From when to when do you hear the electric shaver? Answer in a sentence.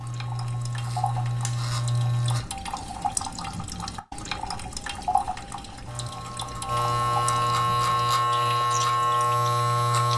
The electric shaver can be heard from 0.0 to 2.4 s and from 5.8 to 10.1 s.